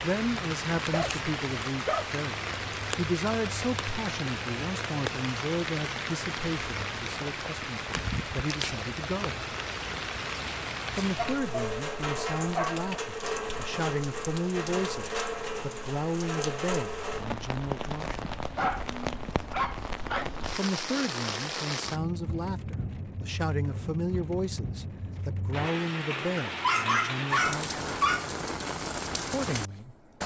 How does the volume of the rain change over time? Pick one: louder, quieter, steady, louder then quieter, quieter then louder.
steady.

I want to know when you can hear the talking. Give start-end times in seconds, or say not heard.
0.0-9.4, 10.9-18.4, 20.6-27.8, 29.3-29.9.